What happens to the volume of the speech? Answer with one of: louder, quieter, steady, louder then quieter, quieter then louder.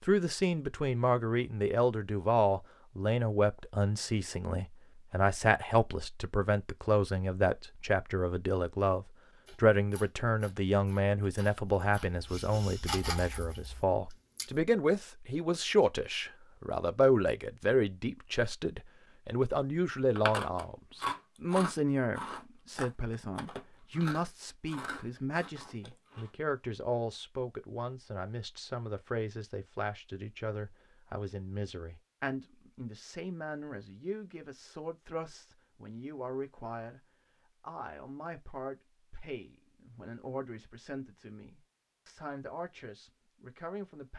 quieter.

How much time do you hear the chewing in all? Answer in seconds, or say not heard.
11 s.